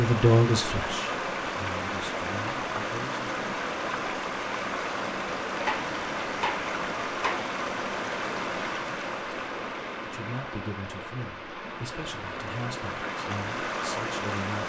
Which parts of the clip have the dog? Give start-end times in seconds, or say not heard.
not heard.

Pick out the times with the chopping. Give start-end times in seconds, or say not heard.
5.7-7.5.